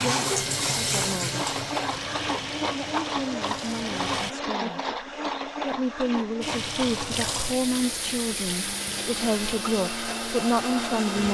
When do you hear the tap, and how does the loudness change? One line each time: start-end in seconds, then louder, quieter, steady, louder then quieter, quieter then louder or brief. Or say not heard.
0.0-4.3 quieter
6.4-11.2 quieter.